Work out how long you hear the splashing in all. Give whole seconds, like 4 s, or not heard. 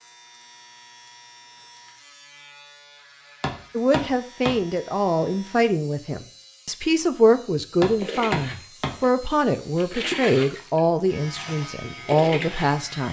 5 s.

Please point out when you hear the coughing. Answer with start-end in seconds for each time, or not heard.
not heard.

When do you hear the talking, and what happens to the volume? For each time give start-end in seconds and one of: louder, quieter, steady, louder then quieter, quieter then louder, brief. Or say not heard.
3.8-13.0 steady.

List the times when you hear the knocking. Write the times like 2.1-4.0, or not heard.
3.4-4.6, 7.8-8.9.